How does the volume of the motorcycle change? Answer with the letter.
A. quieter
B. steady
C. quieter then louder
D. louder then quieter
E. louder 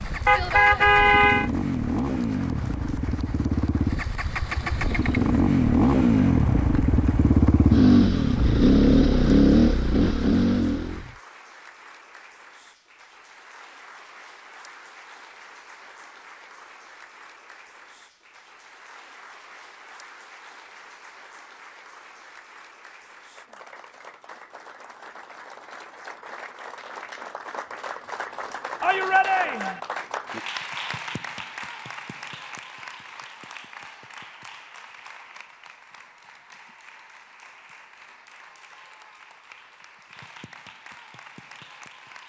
E.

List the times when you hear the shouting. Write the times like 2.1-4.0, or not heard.
28.8-29.8.